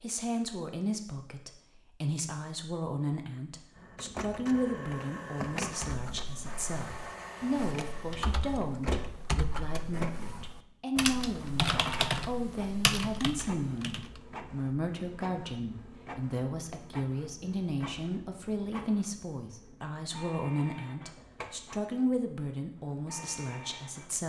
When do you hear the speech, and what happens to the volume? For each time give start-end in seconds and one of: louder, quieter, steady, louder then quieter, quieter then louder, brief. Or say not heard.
0.0-24.2 steady.